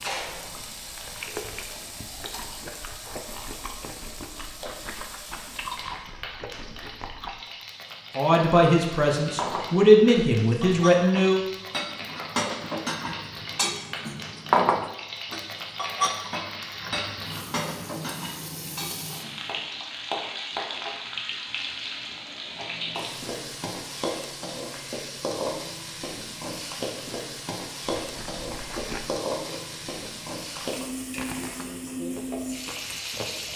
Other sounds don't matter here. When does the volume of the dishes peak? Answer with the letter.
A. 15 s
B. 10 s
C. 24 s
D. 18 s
A.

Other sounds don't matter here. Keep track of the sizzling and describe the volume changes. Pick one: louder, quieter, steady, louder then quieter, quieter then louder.
louder.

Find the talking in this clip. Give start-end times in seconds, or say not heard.
8.2-11.4.